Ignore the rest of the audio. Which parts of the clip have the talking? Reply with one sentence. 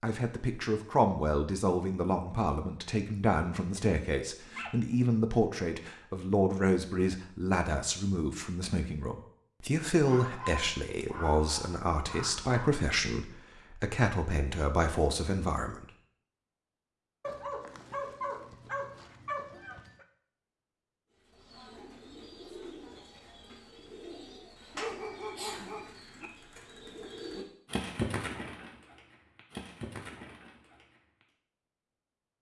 You can hear the talking from 0.0 to 15.8 s.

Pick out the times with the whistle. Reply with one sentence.
The whistle can't be heard in this clip.